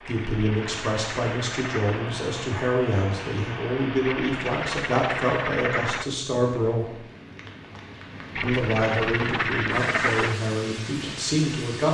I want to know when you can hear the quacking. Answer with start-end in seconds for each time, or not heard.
0.1-2.0, 4.0-6.0, 8.3-10.3.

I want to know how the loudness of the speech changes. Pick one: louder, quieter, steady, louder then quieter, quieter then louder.
steady.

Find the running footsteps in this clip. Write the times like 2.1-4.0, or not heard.
not heard.